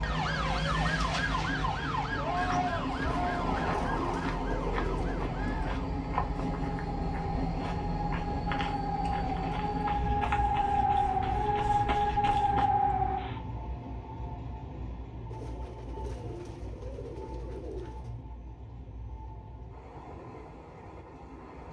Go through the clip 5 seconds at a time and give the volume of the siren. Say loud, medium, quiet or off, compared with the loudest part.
medium, medium, loud, off, off.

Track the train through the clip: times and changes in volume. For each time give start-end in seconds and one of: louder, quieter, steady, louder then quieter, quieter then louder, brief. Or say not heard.
0.0-21.6 quieter.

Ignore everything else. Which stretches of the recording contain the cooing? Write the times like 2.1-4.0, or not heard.
3.0-5.3, 15.3-18.2.